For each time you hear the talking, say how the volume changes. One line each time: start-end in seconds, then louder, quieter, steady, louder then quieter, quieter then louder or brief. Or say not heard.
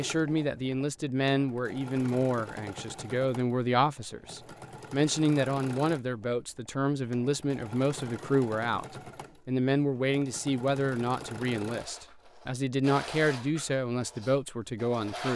0.0-15.3 steady.